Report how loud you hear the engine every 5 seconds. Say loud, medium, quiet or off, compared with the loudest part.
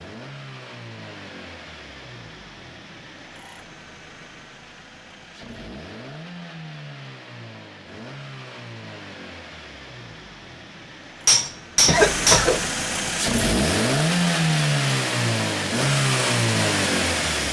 quiet, quiet, loud, loud.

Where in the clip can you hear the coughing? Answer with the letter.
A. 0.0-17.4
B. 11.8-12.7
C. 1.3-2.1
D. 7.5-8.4
B.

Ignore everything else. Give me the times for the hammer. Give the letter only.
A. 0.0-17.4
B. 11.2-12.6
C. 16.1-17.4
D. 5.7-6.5
B.